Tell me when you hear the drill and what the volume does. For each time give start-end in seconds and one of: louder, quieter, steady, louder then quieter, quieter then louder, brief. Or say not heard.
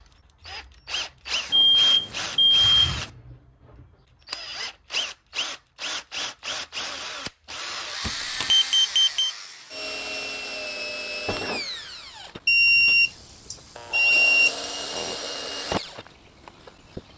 0.0-17.1 steady.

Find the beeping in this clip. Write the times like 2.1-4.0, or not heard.
1.5-3.1, 8.0-9.3, 12.4-15.2.